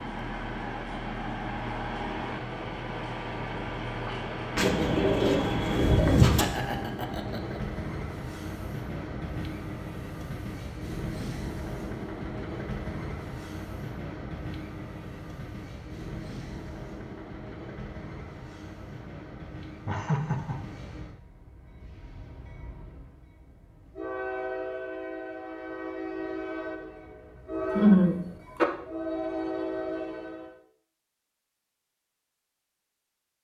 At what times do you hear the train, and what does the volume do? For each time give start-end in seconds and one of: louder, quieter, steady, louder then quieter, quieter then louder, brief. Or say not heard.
0.0-30.6 quieter then louder.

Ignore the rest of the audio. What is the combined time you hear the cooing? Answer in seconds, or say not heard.
2 s.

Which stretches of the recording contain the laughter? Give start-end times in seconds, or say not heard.
6.3-7.6, 19.9-20.6, 27.8-28.6.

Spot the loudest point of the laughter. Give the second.
28 s.